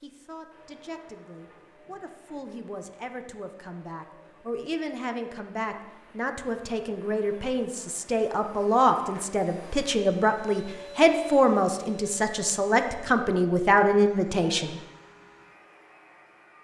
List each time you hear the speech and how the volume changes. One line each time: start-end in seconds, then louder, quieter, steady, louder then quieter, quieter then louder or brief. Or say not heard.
0.0-14.8 louder.